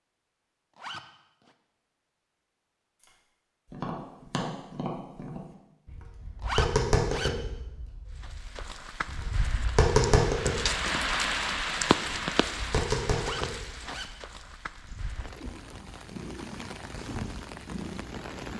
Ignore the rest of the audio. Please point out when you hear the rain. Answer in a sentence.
The rain can be heard from 8.2 to 18.5 s.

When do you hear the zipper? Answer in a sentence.
The zipper can be heard from 0.8 to 1.6 s, from 6.4 to 7.3 s and from 13.2 to 14.1 s.